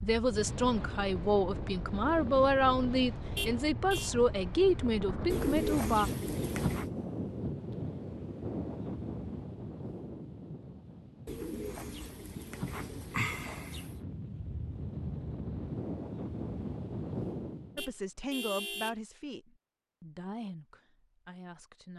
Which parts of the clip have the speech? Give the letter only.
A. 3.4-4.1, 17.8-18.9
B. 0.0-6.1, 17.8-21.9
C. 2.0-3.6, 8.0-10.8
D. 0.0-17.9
B.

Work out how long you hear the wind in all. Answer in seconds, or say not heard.
18 s.